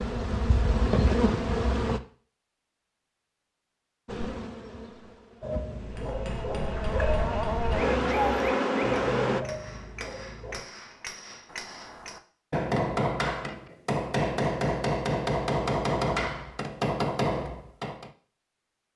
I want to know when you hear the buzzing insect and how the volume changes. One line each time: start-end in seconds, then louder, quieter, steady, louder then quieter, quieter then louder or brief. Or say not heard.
0.0-2.0 brief
4.0-9.4 louder.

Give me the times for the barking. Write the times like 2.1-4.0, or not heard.
5.4-10.7.